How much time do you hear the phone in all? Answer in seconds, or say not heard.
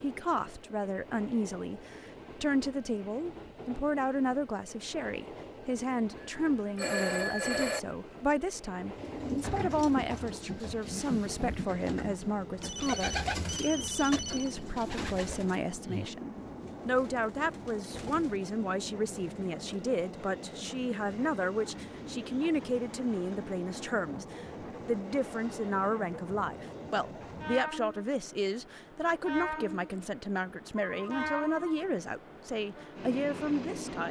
5 s.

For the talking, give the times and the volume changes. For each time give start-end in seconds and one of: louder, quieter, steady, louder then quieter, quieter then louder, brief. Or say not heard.
0.0-34.0 steady.